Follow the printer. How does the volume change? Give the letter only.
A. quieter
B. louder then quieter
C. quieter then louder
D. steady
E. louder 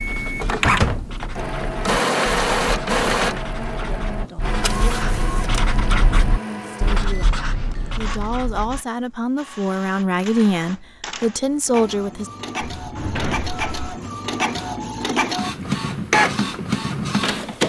C.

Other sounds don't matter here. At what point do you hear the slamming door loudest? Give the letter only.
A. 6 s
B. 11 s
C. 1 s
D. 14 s
C.